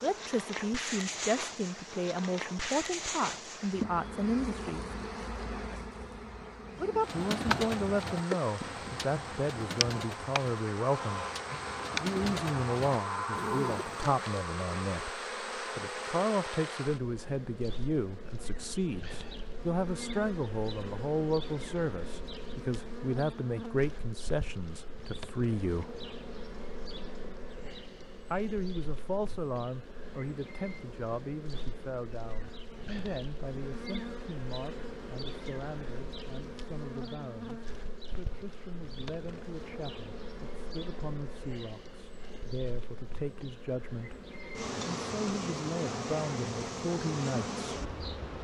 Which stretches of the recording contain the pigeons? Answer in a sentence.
You can hear the pigeons from 6.8 to 14.2 s.